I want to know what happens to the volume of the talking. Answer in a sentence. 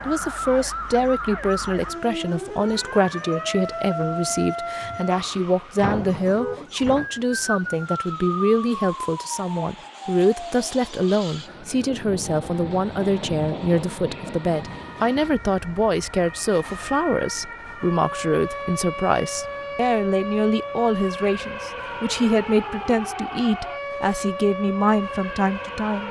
The loudness of the talking stays about the same.